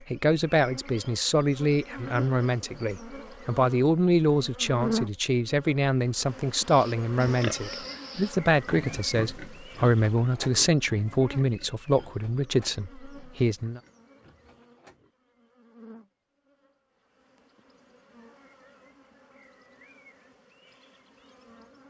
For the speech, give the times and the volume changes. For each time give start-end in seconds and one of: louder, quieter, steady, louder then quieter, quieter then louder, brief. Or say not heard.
0.1-13.8 steady.